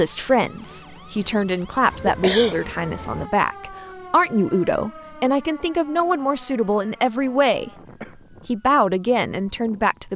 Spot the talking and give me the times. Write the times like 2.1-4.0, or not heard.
0.0-7.7, 8.4-10.1.